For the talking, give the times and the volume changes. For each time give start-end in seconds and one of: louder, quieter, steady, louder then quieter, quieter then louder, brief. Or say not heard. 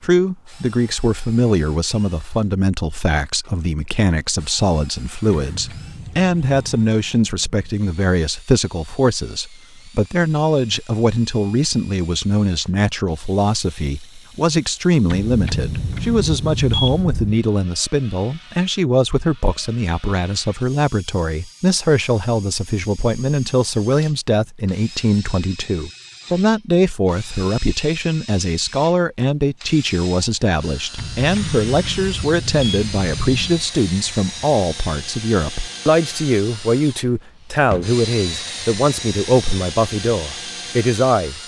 0.0-41.4 steady.